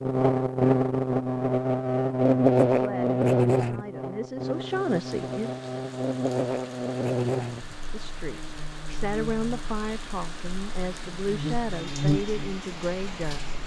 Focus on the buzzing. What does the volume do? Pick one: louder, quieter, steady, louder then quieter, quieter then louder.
quieter then louder.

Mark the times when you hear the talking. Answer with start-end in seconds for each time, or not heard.
2.6-5.5, 7.9-13.6.